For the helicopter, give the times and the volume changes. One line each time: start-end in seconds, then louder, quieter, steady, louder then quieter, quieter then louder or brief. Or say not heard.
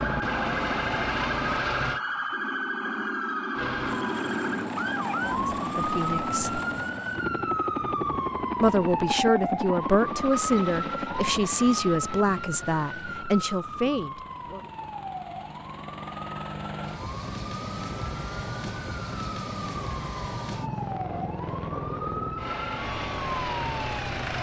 0.0-2.0 brief
3.5-24.3 quieter then louder.